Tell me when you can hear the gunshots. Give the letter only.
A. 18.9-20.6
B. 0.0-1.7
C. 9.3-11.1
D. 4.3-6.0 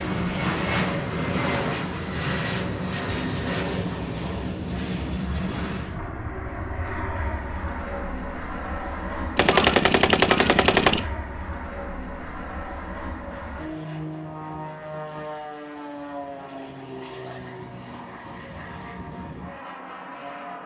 C.